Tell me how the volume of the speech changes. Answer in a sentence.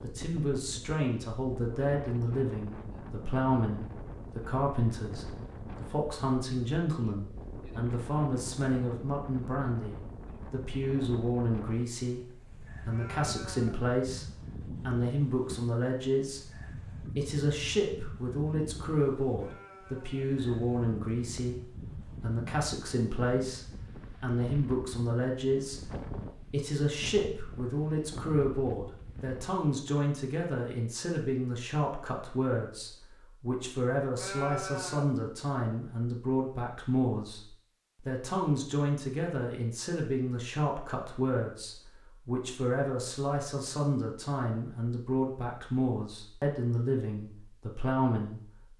The loudness of the speech stays about the same.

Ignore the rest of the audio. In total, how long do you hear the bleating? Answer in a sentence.
The bleating can be heard for 3 seconds in total.